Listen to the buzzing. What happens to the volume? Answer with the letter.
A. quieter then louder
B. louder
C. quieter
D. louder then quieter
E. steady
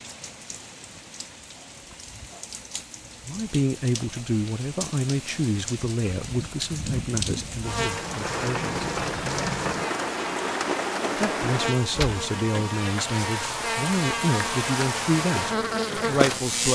B.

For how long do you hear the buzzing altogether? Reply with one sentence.
You can hear the buzzing for 9 seconds altogether.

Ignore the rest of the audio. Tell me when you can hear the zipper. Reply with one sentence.
The zipper can't be heard in this clip.